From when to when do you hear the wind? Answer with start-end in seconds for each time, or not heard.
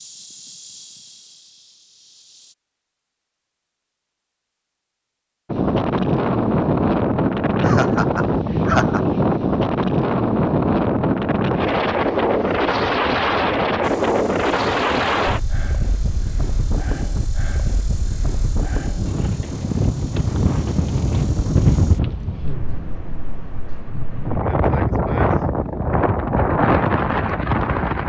5.5-28.0.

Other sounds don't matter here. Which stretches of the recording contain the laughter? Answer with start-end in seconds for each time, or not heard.
7.6-9.0.